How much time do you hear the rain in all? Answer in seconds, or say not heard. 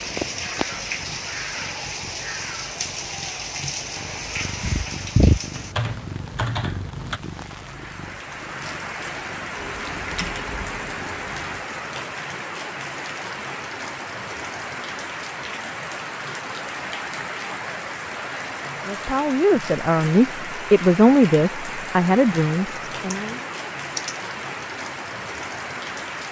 26 s.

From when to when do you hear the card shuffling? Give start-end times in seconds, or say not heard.
not heard.